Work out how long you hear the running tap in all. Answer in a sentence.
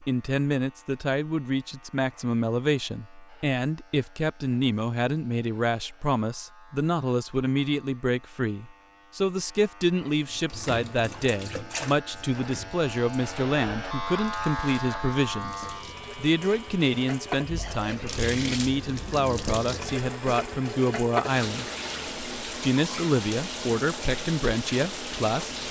You can hear the running tap for 15 seconds altogether.